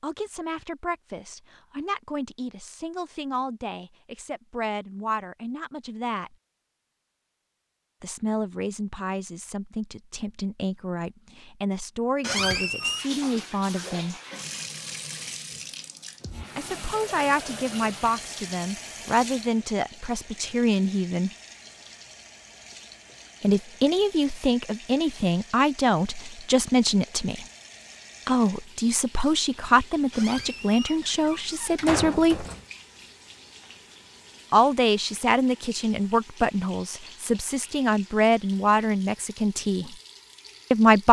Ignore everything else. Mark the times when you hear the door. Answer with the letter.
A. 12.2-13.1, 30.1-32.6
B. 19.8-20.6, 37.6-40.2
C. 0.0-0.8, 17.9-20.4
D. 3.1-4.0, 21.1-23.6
A.